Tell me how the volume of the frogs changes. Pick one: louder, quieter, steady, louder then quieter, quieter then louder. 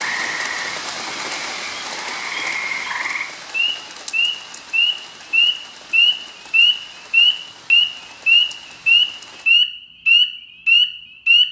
louder.